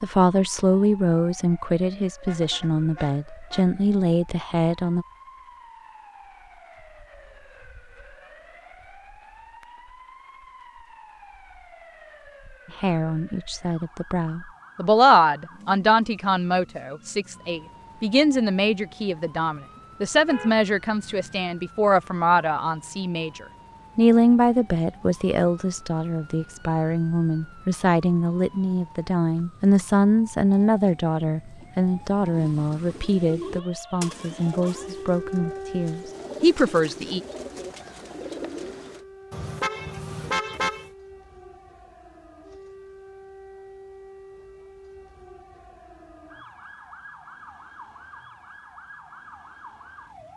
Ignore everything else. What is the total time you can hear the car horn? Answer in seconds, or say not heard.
4 s.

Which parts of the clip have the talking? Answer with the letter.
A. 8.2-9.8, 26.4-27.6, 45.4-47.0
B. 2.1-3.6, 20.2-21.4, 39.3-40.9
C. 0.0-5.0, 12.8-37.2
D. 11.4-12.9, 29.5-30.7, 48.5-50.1
C.